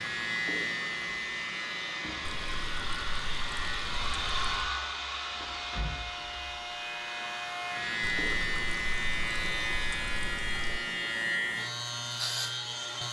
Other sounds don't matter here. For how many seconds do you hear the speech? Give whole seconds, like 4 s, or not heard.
not heard.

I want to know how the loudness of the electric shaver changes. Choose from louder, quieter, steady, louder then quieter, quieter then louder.
quieter then louder.